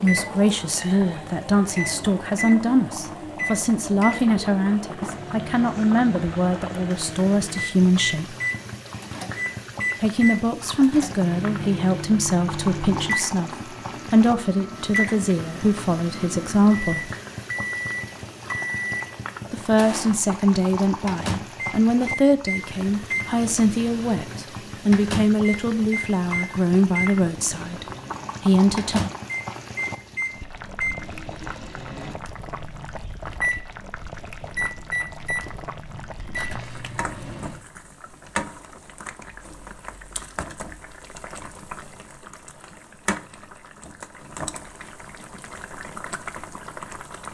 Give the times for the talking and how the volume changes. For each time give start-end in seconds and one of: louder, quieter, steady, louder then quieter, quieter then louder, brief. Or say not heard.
0.0-8.3 steady
10.0-17.1 steady
19.5-29.0 steady.